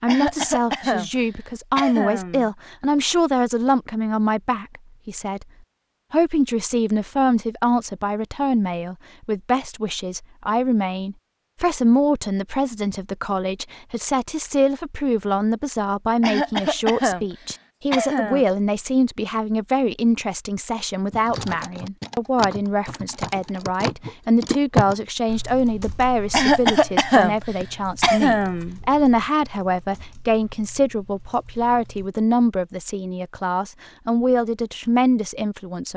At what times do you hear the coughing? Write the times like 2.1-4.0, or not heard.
0.1-2.5, 16.2-18.4, 26.3-28.8.